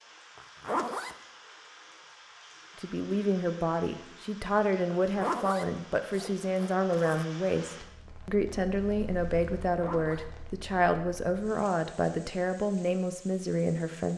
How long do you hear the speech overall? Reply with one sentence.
You can hear the speech for 11 seconds altogether.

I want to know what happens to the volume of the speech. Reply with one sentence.
The loudness of the speech stays about the same.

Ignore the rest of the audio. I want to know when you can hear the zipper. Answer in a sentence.
The zipper can be heard from 0.3 to 1.1 s, from 4.9 to 7.2 s and from 9.8 to 10.3 s.